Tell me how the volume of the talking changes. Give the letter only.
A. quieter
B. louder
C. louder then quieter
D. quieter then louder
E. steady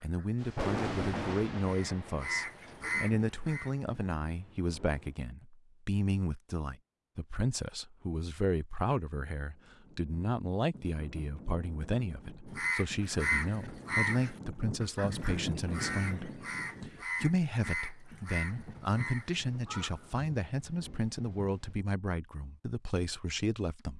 E.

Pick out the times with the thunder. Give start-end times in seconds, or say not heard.
0.3-5.1, 18.6-21.8.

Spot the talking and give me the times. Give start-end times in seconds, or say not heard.
0.0-23.9.